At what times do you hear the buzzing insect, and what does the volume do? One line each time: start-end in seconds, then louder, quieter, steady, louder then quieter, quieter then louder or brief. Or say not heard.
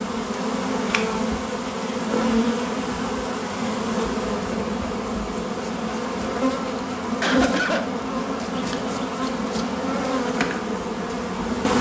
0.0-11.7 steady.